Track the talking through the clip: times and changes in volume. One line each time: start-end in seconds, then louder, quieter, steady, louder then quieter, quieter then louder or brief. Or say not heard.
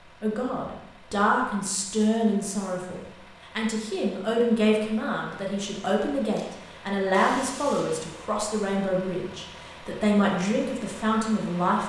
0.2-11.8 steady.